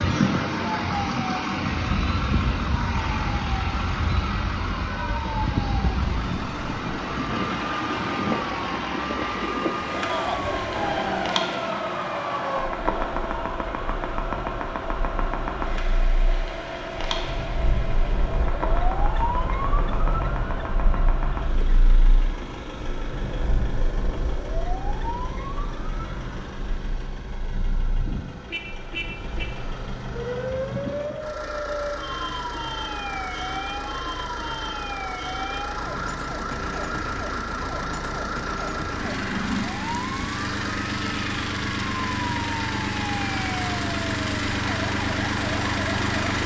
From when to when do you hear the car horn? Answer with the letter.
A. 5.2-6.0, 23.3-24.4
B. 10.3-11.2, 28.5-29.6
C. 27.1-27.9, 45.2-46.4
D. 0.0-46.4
B.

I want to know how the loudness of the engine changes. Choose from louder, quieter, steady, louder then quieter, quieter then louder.
quieter then louder.